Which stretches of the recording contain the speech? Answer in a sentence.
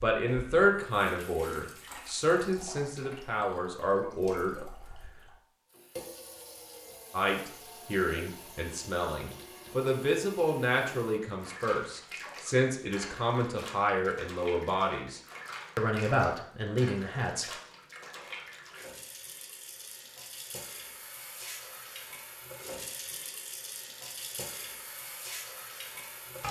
The speech can be heard from 0.0 to 4.7 s and from 7.1 to 17.5 s.